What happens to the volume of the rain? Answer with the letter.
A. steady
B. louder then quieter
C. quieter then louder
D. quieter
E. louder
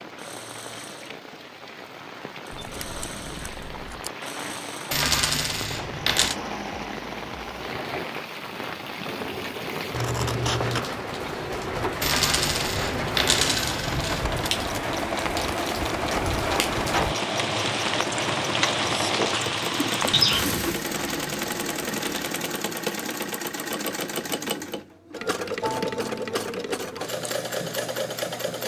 E.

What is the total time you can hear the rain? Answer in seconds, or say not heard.
21 s.